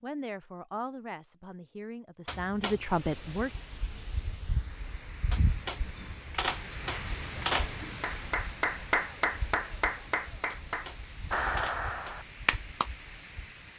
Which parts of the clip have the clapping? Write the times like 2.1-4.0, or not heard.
6.9-12.9.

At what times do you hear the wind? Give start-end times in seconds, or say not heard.
2.6-13.7.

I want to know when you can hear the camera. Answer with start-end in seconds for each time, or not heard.
2.2-3.0, 5.3-7.7, 10.5-12.2.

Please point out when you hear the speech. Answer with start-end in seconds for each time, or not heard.
0.0-3.5.